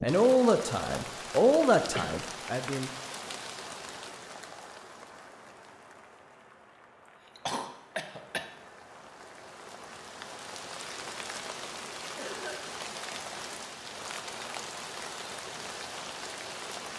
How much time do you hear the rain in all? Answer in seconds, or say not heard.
17 s.